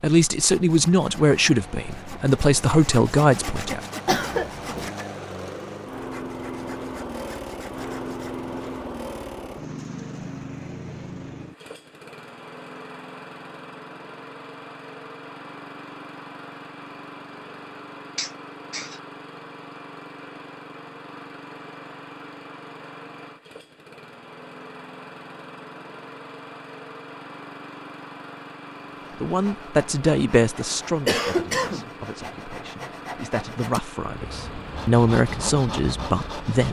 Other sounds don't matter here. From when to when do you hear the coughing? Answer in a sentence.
The coughing can be heard from 4.0 to 4.9 s, from 18.1 to 19.0 s and from 31.1 to 31.9 s.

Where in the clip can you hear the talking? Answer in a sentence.
You can hear the talking from 0.0 to 3.8 s and from 29.2 to 36.6 s.